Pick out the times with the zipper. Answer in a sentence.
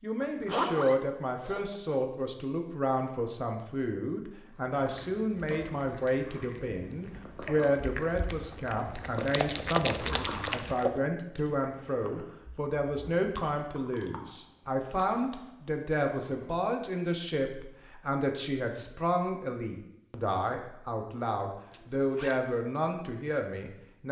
You can hear the zipper from 0.2 to 2.0 s, from 10.2 to 10.7 s and from 21.7 to 22.4 s.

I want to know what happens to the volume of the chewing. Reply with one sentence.
The volume of the chewing goes up, then down.